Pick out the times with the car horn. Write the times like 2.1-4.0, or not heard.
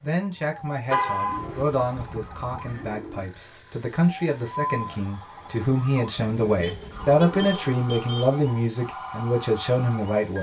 0.9-1.6, 6.6-8.3.